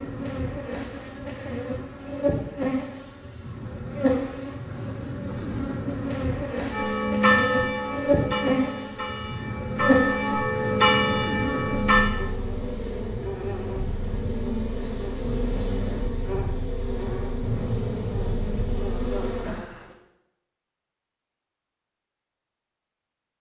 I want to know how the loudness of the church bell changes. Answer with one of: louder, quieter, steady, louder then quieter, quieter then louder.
quieter then louder.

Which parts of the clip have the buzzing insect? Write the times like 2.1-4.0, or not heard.
0.0-19.8.